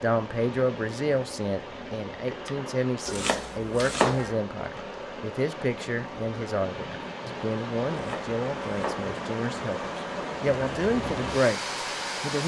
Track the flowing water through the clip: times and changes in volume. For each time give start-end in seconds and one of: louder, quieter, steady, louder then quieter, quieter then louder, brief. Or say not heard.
0.0-12.4 louder.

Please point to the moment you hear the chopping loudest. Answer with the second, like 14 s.
4 s.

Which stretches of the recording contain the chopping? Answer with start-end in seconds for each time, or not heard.
3.0-4.3, 7.9-9.2.